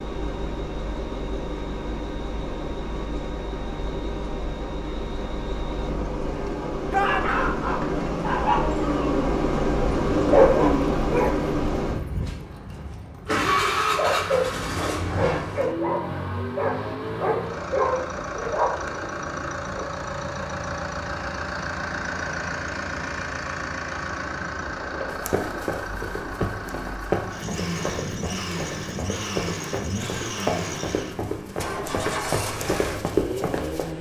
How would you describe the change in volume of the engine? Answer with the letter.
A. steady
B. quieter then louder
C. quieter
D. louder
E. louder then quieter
E.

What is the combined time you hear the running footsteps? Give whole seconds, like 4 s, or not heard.
9 s.